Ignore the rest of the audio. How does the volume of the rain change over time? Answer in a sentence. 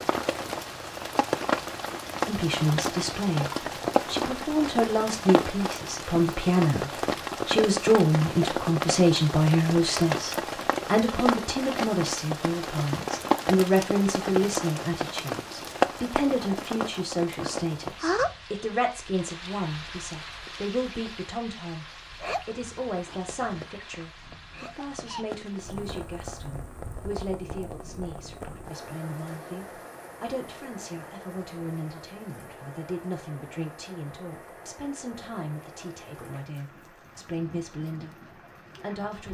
The loudness of the rain goes down.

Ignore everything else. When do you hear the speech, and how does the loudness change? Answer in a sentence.
You can hear the speech from 2.2 to 39.3 s, getting quieter.